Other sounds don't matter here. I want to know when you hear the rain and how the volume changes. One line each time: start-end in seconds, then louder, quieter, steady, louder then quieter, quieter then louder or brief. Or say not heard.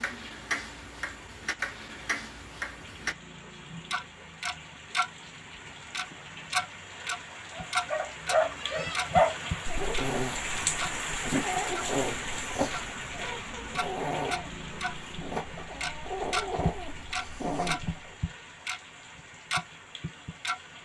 0.0-20.8 louder then quieter.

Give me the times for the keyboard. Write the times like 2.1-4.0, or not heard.
not heard.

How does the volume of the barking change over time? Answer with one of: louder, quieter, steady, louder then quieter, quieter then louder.
quieter.